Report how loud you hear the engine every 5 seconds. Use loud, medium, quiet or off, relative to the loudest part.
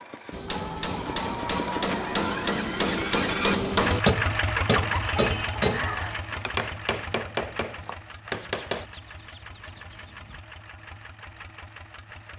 loud, medium, quiet.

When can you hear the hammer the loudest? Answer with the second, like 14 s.
4 s.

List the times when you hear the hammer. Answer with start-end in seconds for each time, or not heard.
0.3-8.8.